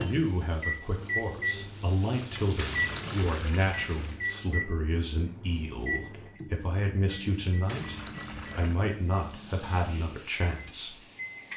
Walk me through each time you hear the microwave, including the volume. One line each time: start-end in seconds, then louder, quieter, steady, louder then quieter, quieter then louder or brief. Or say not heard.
0.0-11.5 quieter.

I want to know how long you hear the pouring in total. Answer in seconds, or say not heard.
3 s.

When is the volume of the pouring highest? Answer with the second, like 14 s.
3 s.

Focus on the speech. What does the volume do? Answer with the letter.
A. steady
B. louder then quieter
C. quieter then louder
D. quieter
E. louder
A.